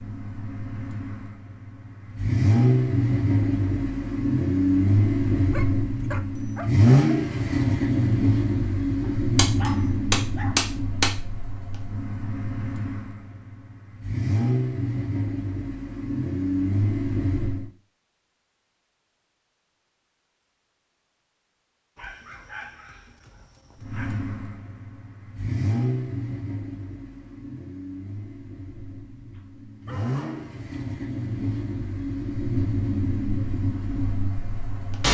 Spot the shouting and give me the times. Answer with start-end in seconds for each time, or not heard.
not heard.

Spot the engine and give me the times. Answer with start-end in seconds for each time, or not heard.
0.0-17.7, 23.8-35.0.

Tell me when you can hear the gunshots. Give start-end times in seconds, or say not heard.
9.3-11.1.